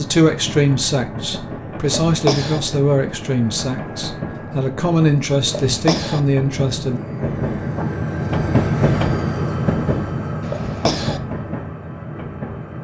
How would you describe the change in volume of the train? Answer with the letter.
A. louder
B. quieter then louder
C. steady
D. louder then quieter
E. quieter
D.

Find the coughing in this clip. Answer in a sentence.
You can hear the coughing from 1.9 to 2.6 s, from 5.5 to 6.2 s and from 10.4 to 11.2 s.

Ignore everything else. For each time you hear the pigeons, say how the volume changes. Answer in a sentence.
You can't hear the pigeons here.